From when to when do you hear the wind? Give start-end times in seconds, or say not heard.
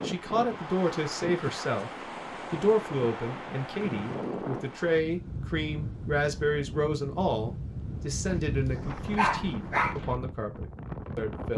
0.0-11.5.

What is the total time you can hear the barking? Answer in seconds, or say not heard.
2 s.